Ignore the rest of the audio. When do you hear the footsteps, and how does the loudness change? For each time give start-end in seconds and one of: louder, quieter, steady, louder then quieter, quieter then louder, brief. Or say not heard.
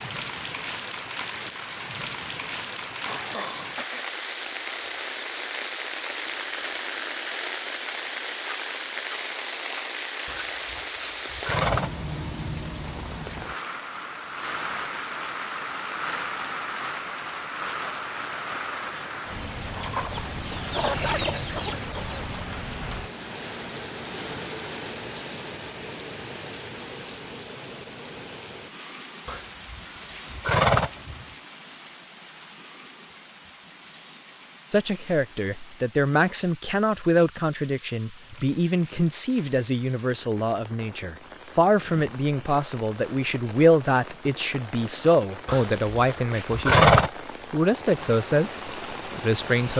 not heard.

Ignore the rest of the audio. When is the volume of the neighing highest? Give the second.
47 s.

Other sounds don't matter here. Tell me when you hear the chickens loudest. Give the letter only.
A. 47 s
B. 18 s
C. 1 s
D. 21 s
D.